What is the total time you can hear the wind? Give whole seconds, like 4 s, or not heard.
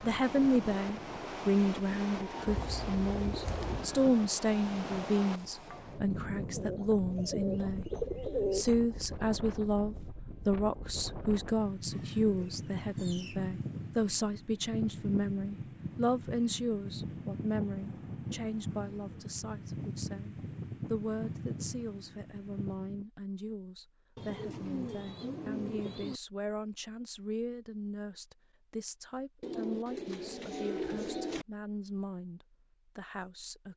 23 s.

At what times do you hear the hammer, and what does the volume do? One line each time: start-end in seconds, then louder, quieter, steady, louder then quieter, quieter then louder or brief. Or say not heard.
not heard.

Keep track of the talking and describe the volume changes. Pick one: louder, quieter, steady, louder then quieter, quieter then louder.
quieter.